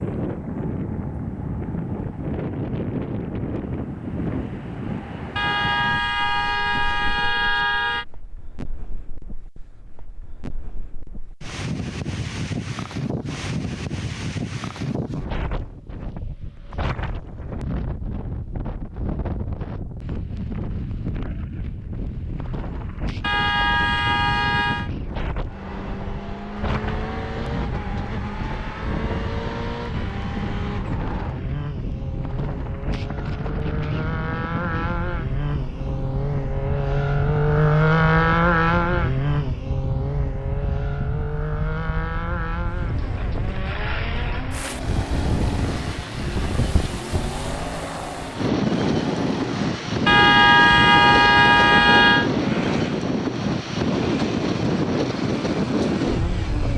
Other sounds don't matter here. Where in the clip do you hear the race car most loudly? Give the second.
38 s.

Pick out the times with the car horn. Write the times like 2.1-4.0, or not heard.
5.3-8.1, 23.2-24.9, 50.0-52.3.